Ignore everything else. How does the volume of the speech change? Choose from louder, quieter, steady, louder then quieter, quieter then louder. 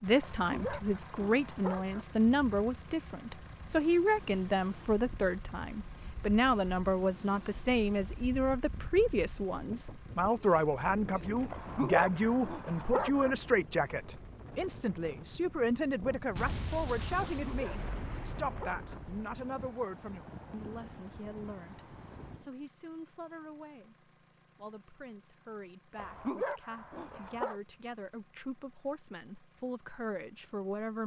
quieter.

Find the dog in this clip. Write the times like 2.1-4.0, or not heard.
0.2-2.0, 11.5-13.3, 17.3-18.9, 25.9-27.6.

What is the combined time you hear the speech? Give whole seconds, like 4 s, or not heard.
31 s.